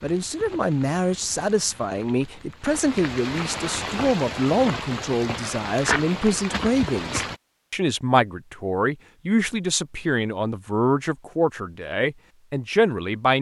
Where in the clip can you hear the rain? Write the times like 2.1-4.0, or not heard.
0.0-7.4.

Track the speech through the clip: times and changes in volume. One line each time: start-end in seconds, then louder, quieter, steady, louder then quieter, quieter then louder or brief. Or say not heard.
0.0-13.3 steady.